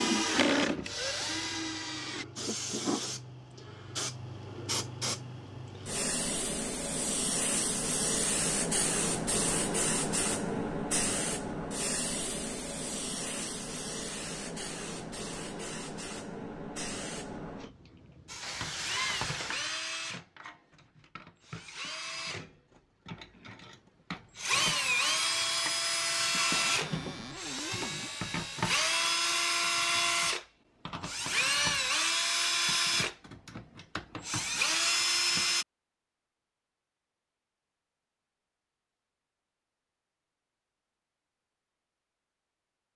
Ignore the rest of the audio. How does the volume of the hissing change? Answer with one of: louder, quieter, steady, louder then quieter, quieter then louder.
louder then quieter.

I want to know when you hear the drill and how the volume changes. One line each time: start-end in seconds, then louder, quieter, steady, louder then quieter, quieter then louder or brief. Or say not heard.
0.0-2.2 brief
18.2-35.6 louder.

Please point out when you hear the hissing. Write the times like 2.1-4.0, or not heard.
0.0-19.6.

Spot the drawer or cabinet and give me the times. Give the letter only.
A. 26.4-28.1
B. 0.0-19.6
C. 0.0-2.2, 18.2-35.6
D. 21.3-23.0
A.